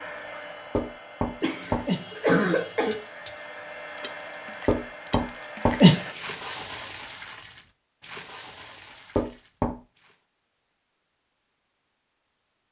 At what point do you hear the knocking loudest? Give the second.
6 s.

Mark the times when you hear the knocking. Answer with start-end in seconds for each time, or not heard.
0.8-2.0, 4.7-6.2, 9.2-9.8.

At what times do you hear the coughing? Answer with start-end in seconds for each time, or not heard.
1.4-3.0.